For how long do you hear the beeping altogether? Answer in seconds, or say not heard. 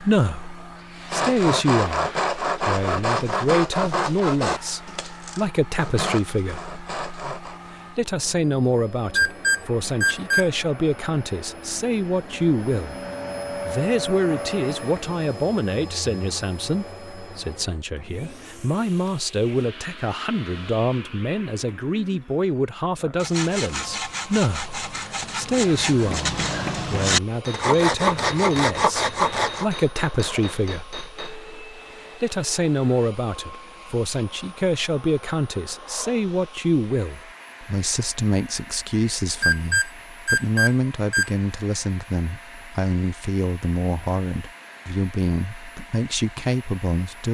3 s.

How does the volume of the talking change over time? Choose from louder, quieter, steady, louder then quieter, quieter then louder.
steady.